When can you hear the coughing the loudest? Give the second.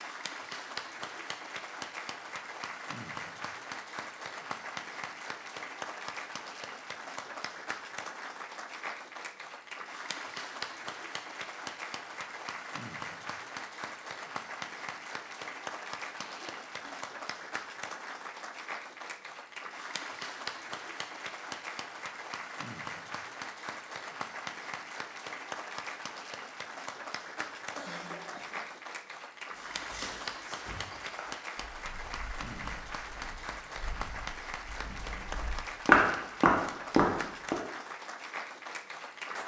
28 s.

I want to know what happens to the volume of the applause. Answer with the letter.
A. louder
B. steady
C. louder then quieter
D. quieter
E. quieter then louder
B.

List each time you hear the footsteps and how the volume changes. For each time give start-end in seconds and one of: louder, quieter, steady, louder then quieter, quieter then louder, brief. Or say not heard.
29.5-37.5 quieter then louder.